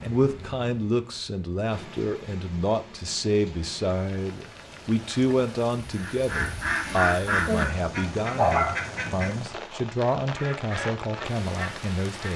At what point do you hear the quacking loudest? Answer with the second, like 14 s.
7 s.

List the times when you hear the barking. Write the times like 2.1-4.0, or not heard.
8.3-9.3.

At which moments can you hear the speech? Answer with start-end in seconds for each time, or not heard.
0.0-12.3.